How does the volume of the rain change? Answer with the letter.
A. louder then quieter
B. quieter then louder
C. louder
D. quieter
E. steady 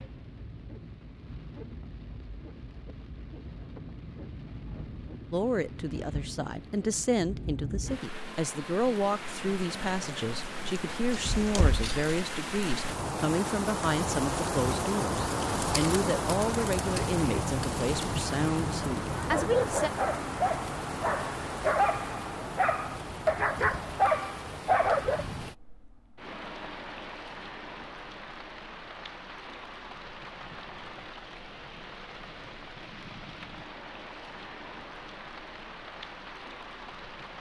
A.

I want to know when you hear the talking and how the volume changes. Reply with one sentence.
The talking can be heard from 5.3 to 19.9 s, at a steady volume.